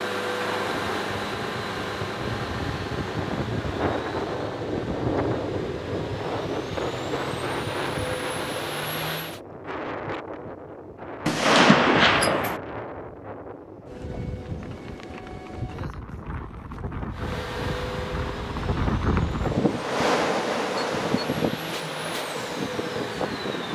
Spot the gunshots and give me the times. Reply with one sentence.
You can hear the gunshots from 11.2 to 12.6 s.